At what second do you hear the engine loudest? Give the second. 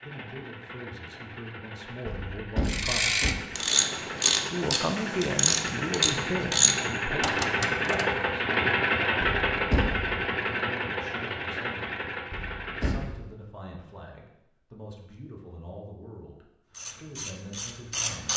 9 s.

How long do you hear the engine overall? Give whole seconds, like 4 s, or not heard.
13 s.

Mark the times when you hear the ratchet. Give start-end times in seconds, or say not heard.
2.6-8.1, 16.7-18.3.